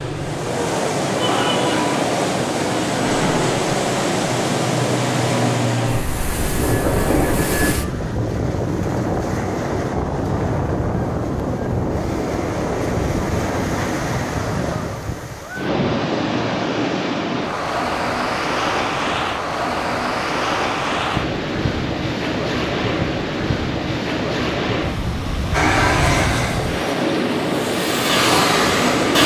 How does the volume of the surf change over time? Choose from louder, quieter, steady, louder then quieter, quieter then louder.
steady.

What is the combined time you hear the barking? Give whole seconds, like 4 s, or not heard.
not heard.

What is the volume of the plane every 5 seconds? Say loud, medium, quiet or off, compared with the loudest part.
medium, loud, off, off, off, loud.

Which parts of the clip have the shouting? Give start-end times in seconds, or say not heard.
1.1-1.9.